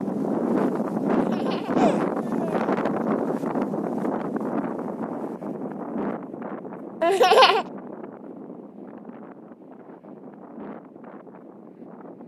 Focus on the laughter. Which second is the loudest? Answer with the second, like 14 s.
7 s.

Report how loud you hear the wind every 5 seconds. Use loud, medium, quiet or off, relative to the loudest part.
loud, medium, quiet.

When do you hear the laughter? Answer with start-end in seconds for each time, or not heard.
1.1-2.6, 7.0-7.7.